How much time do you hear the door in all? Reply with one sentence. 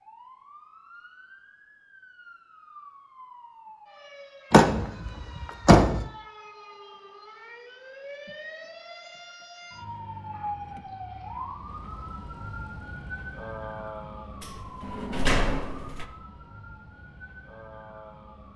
You can hear the door for 3 seconds altogether.